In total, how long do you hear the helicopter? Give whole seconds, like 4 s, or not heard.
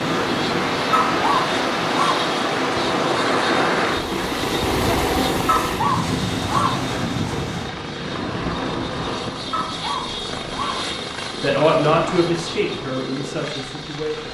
14 s.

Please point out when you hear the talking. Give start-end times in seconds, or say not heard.
11.4-14.2.